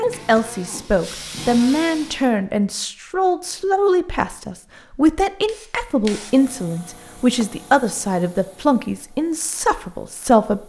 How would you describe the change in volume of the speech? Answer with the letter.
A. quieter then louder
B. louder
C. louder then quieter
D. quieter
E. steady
E.